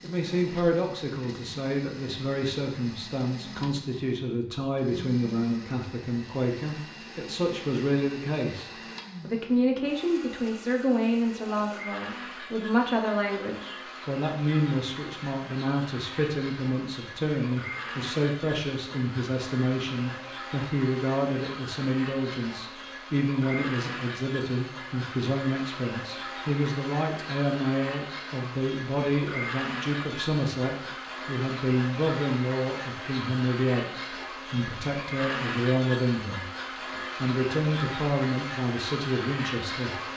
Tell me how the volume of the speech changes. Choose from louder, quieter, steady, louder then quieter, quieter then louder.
steady.